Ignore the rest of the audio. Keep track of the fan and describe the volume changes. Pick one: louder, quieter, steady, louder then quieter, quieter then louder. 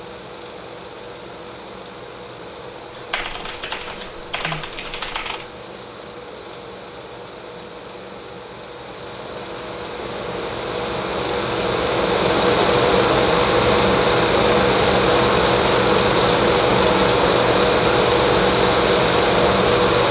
louder.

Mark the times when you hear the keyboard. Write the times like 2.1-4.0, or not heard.
2.9-5.5.